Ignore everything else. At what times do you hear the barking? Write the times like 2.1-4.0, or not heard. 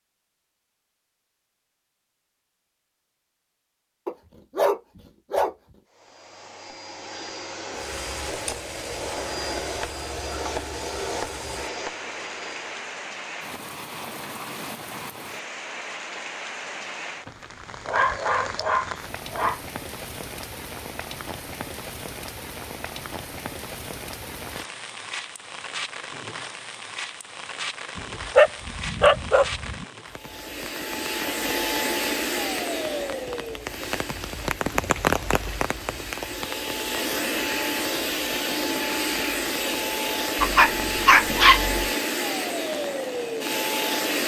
4.0-5.5, 17.2-19.6, 27.9-29.9, 40.4-41.9.